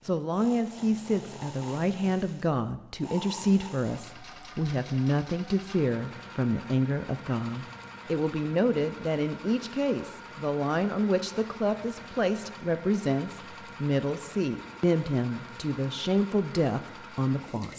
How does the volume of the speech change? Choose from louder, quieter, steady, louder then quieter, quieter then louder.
steady.